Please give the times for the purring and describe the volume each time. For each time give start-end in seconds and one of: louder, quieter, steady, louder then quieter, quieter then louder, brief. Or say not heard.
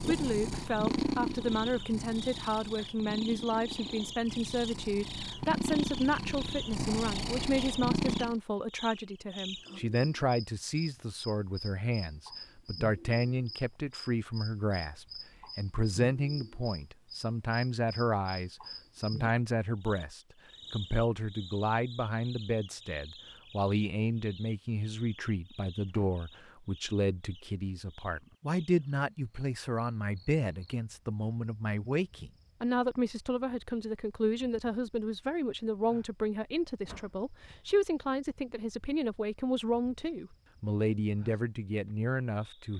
0.0-8.4 quieter then louder.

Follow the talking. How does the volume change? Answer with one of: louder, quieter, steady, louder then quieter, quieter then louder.
steady.